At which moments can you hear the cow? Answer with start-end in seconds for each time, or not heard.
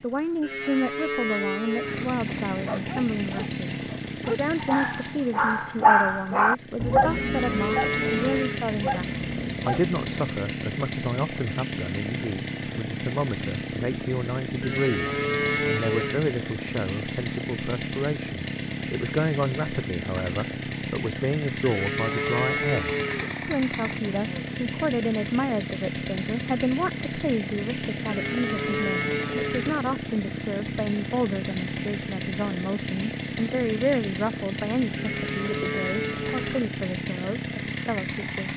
0.4-2.1, 7.0-8.7, 14.6-16.2, 21.6-23.4, 28.1-29.8, 35.0-36.7.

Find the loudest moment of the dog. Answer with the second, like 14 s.
6 s.